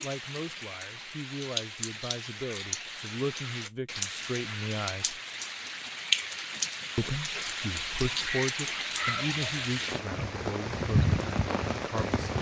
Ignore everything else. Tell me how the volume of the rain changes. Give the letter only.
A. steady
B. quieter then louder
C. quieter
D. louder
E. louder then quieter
D.